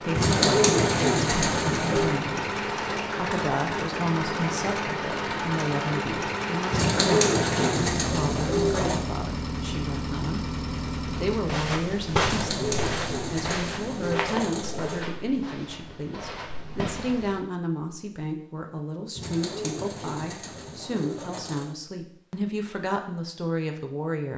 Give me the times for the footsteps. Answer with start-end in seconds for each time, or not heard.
11.4-17.4.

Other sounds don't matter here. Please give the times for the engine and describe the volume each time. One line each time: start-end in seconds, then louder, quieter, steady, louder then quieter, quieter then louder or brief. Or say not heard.
0.0-11.7 steady.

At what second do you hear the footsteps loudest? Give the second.
12 s.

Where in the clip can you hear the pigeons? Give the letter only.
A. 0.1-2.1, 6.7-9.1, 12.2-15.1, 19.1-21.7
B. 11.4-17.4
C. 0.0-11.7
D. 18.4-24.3
A.